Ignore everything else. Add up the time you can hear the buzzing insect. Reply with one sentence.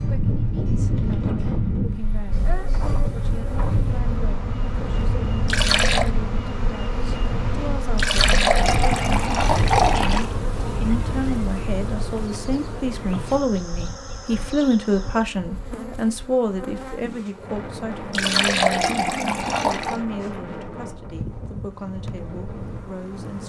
The buzzing insect can be heard for 21 seconds in total.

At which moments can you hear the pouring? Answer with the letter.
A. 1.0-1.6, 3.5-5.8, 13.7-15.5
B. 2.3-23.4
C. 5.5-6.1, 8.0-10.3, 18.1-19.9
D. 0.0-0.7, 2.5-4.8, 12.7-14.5
C.